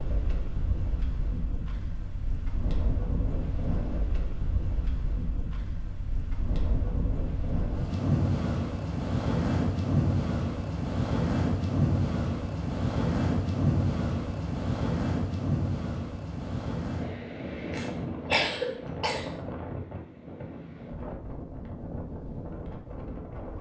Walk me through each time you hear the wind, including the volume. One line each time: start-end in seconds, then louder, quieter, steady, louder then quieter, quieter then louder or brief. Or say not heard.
0.0-23.5 louder then quieter.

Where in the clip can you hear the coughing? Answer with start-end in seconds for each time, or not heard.
17.7-19.3.